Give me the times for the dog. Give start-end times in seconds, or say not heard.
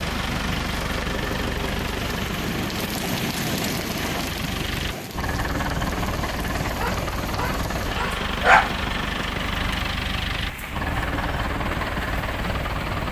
6.8-8.7.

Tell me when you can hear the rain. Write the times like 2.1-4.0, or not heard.
0.0-13.0.